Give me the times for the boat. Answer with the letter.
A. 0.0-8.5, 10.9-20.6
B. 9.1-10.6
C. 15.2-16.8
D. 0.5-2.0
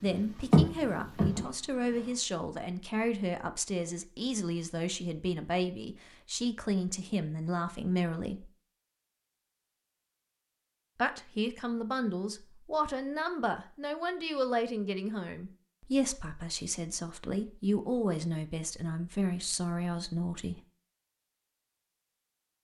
D.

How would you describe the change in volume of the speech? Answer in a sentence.
The loudness of the speech stays about the same.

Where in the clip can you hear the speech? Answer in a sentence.
You can hear the speech from 0.0 to 8.5 s and from 10.9 to 20.6 s.